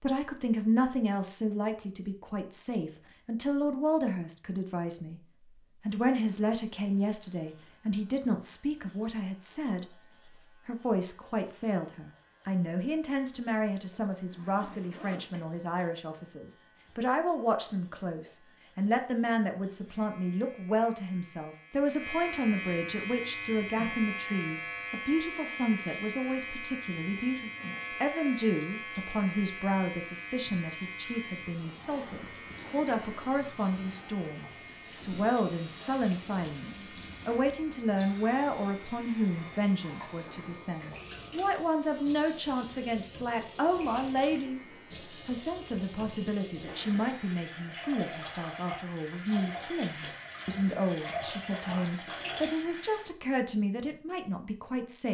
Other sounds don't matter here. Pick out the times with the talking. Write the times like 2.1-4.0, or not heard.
0.0-5.2, 5.8-9.8, 10.7-44.6, 45.2-55.1.